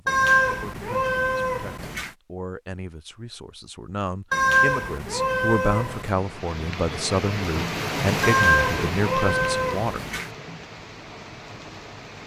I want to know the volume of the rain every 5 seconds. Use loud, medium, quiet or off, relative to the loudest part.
off, loud, medium.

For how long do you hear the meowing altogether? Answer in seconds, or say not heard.
6 s.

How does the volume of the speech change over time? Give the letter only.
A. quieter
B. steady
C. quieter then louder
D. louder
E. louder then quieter
D.